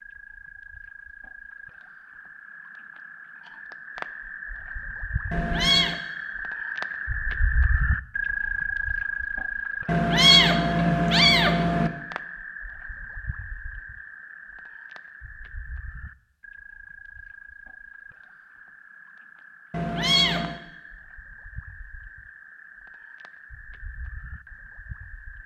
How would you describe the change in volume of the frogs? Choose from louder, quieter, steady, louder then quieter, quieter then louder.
louder then quieter.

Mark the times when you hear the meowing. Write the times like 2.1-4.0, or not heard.
5.3-6.0, 9.8-11.9, 19.7-20.6.